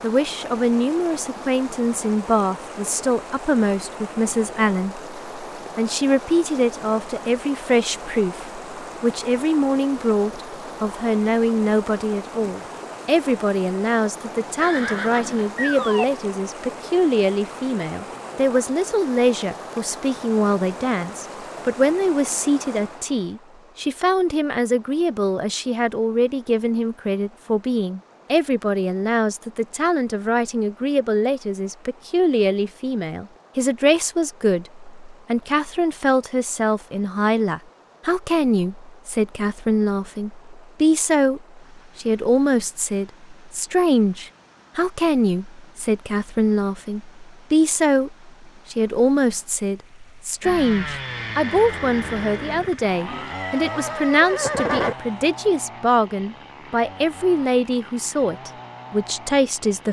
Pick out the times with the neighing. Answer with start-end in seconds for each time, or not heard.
14.6-16.1, 53.0-55.0.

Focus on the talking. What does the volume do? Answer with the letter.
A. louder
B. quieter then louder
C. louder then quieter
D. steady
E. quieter
D.